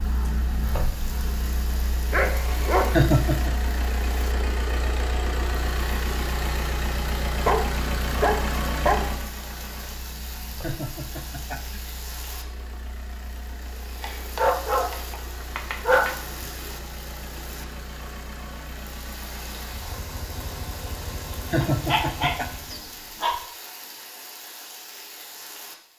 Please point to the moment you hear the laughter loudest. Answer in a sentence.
The loudest moment of the laughter is at 3 seconds.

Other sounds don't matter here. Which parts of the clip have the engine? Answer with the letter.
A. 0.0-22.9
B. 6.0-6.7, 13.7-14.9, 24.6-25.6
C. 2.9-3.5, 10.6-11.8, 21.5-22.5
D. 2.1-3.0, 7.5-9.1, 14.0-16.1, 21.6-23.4
A.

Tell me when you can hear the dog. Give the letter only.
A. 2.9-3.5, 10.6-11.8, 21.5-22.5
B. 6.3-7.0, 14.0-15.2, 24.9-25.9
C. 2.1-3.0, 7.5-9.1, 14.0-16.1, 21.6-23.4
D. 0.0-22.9
C.